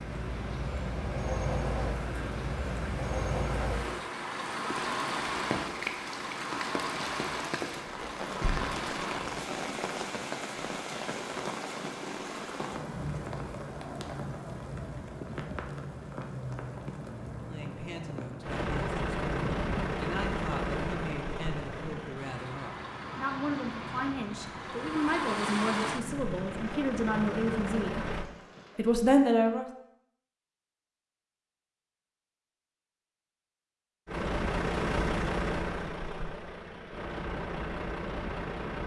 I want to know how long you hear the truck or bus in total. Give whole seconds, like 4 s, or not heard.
24 s.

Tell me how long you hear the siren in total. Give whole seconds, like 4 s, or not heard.
not heard.